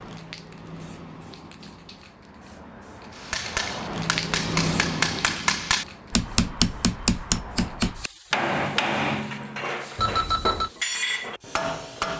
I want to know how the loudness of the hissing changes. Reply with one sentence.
The volume of the hissing goes up, then down.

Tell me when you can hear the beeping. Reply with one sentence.
You can hear the beeping from 9.9 to 10.7 s.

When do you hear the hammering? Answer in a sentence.
You can hear the hammering from 3.1 to 12.1 s.